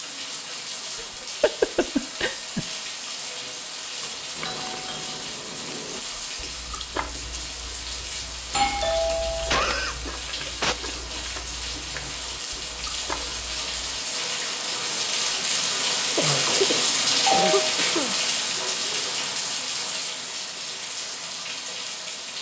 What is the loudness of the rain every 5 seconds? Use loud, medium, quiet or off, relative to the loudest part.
medium, medium, medium, loud, medium.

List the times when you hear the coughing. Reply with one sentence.
You can hear the coughing from 0.9 to 2.6 s, from 9.0 to 10.8 s and from 16.1 to 18.1 s.